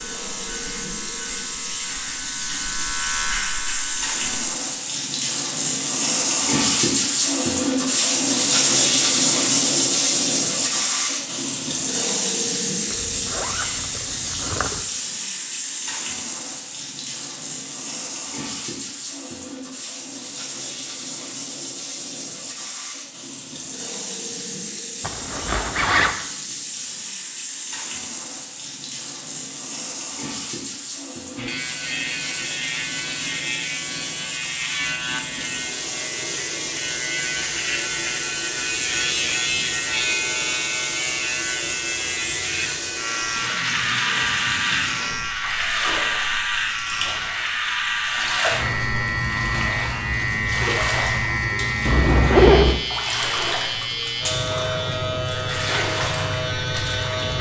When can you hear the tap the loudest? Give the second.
9 s.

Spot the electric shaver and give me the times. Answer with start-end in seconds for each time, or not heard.
0.0-4.5, 31.4-57.3.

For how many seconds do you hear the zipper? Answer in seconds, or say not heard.
4 s.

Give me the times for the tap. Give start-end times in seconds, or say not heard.
0.0-57.2.